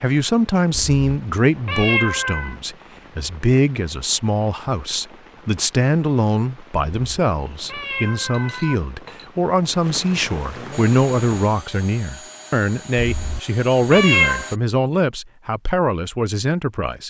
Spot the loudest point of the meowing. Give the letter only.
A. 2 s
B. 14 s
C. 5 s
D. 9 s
B.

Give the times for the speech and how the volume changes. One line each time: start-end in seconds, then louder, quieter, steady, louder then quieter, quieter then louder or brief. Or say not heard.
0.0-17.0 steady.